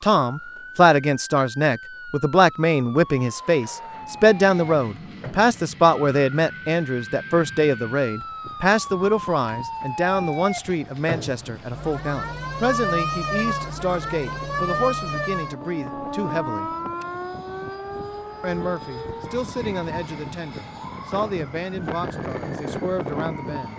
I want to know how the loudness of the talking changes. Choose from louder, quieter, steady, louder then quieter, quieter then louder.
quieter.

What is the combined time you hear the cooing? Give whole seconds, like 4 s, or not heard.
not heard.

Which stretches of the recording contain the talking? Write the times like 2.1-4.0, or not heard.
0.0-16.7, 18.4-23.7.